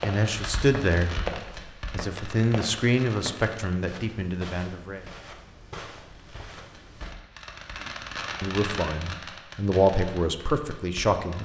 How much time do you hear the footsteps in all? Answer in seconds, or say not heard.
7 s.